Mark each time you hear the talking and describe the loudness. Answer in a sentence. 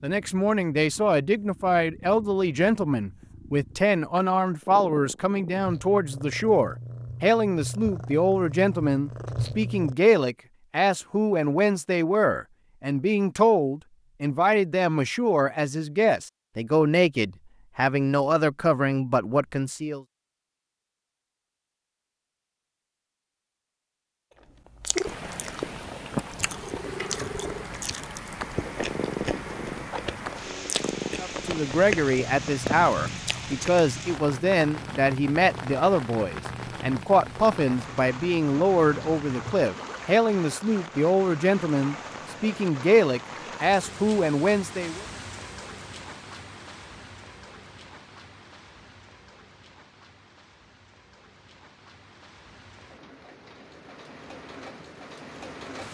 You can hear the talking from 0.0 to 20.0 s, at a steady volume; and from 31.2 to 45.0 s, at a steady volume.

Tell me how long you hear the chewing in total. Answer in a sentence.
You can hear the chewing for 9 seconds altogether.